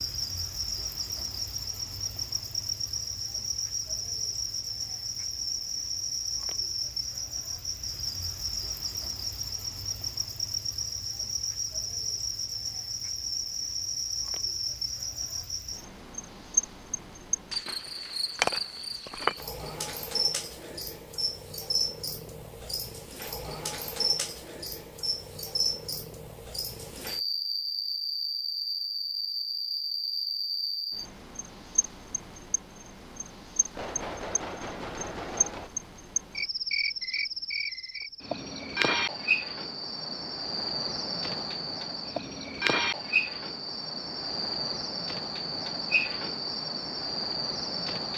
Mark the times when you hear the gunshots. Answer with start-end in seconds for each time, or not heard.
17.5-18.8, 33.7-35.7.